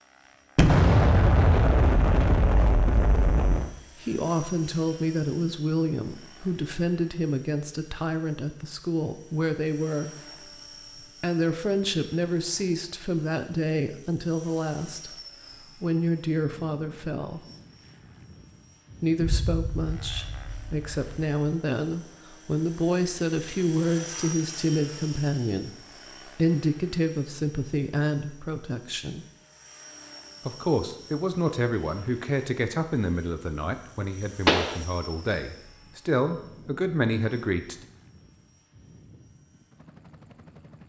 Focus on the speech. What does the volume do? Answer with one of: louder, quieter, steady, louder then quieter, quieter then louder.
steady.